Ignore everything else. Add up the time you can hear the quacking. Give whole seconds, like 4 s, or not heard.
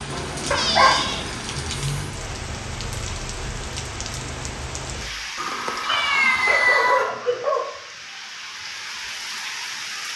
not heard.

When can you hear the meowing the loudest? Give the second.
7 s.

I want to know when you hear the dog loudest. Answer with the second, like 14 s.
1 s.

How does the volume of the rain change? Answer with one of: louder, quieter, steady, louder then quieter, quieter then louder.
quieter then louder.